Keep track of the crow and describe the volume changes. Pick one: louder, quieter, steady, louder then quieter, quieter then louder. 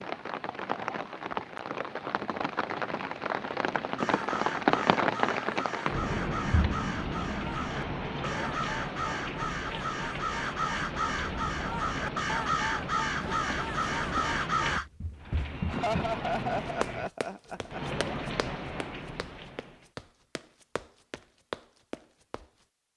louder.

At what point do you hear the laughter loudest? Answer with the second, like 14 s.
16 s.